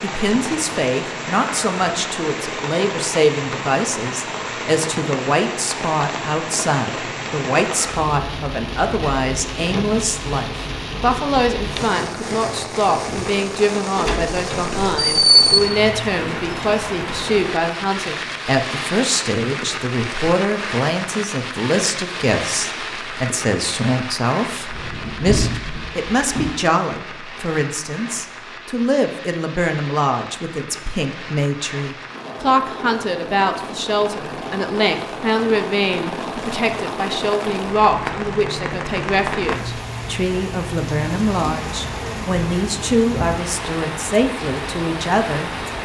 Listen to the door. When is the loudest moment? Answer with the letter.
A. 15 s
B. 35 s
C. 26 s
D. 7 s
A.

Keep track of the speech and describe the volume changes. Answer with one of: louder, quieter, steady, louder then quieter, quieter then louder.
steady.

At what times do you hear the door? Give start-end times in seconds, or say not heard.
13.9-15.4, 24.7-26.5.